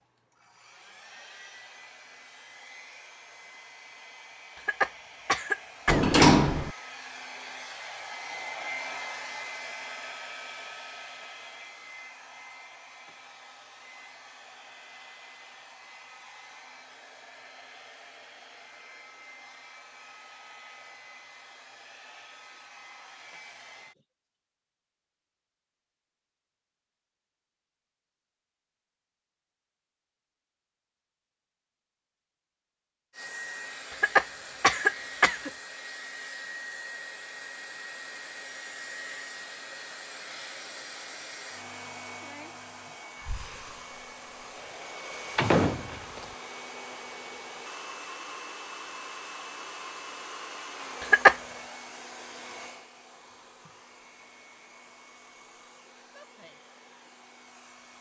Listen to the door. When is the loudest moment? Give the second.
6 s.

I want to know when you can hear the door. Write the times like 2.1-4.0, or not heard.
5.8-6.7, 45.4-46.2.